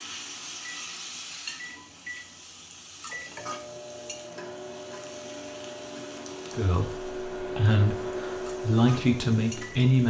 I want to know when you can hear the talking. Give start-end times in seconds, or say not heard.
6.5-10.0.